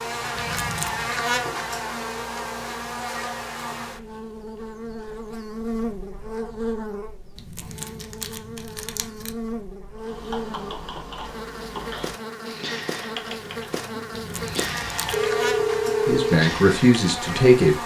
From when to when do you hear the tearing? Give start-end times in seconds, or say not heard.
0.3-1.1, 7.3-9.3, 14.1-15.2.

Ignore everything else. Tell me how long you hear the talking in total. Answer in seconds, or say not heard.
2 s.